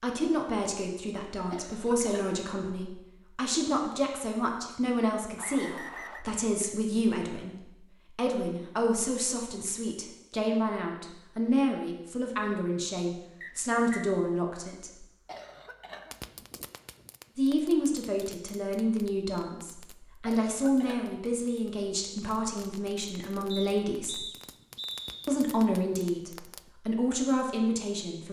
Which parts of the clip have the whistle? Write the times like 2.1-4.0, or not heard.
5.3-6.2, 13.4-14.1, 23.5-25.3.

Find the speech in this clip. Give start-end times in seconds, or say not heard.
0.0-15.0, 17.4-24.2, 25.2-28.2.